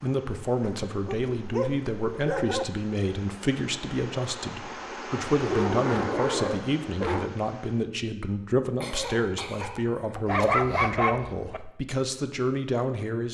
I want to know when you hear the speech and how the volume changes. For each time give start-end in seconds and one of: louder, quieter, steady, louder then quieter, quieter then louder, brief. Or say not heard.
0.0-13.3 steady.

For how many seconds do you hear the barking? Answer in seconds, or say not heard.
5 s.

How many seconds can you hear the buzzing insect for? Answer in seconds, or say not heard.
not heard.